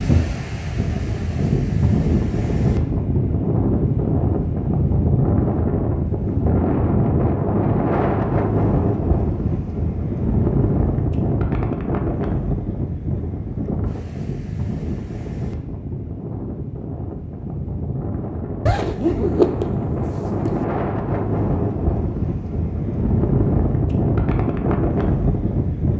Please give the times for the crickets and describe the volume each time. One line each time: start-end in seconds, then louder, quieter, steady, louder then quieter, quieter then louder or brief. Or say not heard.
not heard.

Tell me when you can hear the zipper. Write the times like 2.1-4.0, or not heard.
18.6-20.6.